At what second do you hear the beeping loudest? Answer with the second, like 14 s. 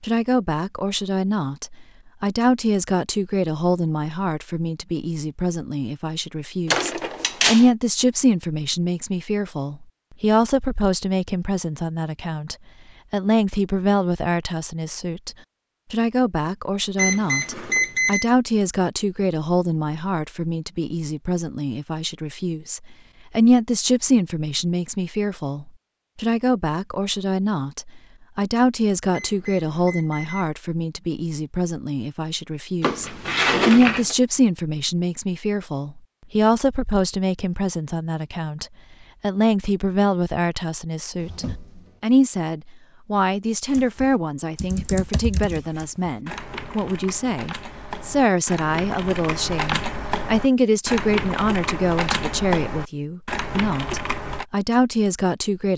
18 s.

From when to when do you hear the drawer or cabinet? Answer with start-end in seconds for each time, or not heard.
6.7-7.7, 32.8-34.1, 41.1-42.0.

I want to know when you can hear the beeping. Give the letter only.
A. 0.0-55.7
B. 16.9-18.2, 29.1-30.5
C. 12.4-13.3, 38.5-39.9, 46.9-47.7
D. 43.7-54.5
B.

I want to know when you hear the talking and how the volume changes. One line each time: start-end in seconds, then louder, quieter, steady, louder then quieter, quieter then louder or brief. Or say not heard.
0.0-55.7 steady.